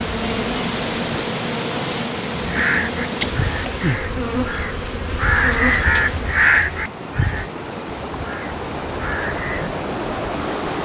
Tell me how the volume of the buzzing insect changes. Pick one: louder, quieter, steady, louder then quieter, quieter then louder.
steady.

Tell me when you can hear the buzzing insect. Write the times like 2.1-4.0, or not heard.
0.0-6.4.